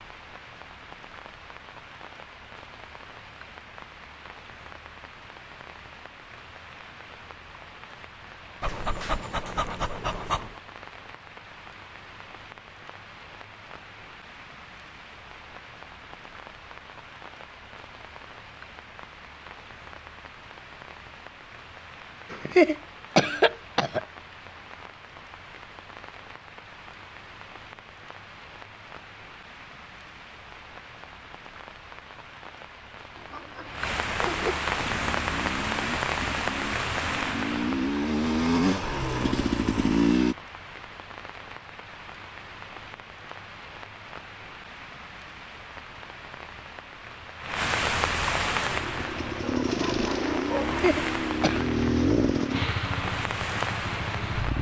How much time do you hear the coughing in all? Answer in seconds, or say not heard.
3 s.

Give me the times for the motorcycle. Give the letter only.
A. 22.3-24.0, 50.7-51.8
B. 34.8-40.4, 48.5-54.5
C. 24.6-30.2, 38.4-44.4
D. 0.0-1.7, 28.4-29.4
B.